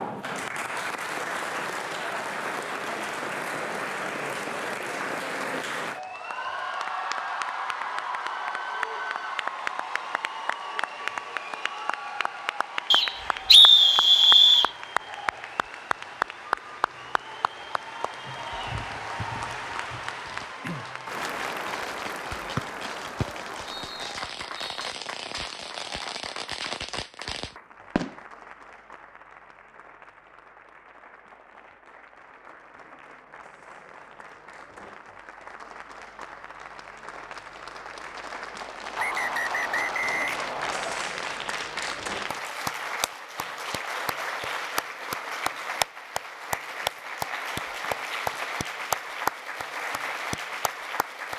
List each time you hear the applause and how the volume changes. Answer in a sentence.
You can hear the applause from 0.0 to 51.3 s, getting quieter then louder.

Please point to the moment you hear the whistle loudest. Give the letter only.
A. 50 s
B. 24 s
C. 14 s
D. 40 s
C.